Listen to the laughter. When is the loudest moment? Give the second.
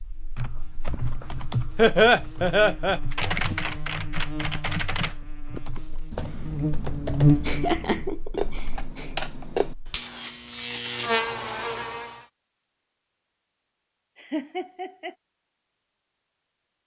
2 s.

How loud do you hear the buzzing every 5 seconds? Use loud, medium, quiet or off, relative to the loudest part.
quiet, loud, loud, off.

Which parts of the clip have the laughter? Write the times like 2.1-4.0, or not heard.
1.8-3.0, 7.5-9.1, 14.2-15.2.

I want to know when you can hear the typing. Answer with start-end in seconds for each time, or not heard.
0.3-9.8.